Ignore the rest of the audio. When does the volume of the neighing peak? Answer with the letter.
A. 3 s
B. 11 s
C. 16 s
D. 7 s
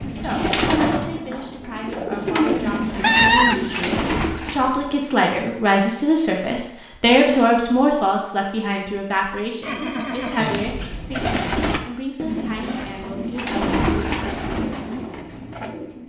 A.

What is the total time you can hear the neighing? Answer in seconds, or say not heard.
2 s.